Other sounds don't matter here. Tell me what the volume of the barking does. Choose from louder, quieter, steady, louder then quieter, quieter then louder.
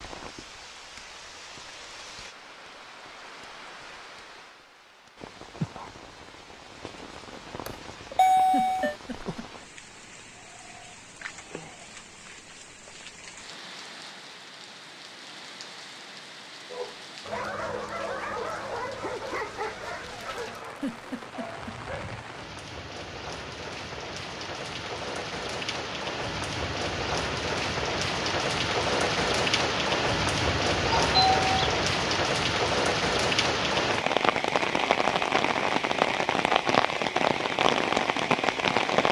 quieter.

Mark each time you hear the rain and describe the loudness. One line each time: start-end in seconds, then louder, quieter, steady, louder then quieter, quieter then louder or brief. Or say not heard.
0.0-39.0 louder.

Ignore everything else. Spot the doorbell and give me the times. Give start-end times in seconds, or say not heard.
7.7-8.9, 31.0-31.8.